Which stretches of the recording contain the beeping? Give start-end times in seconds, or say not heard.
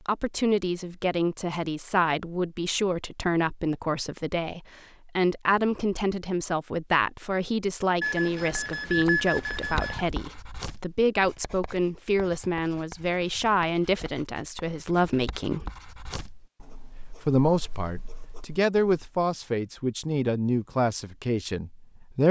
8.0-10.1.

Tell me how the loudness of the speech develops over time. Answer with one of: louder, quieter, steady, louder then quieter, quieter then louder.
steady.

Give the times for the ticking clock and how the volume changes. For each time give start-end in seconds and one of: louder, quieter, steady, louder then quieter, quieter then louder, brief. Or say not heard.
not heard.